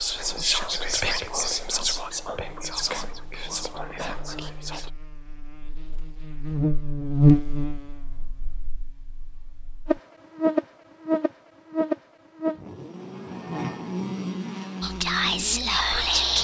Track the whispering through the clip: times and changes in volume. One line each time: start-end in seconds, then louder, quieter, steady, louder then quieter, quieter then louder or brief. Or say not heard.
0.0-4.9 quieter
14.8-16.3 brief.